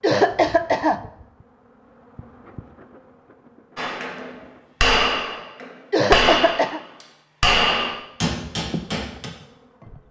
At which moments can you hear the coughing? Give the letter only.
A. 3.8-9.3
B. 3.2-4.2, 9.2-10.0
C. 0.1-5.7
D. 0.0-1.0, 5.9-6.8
D.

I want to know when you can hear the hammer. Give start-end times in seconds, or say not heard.
3.8-9.3.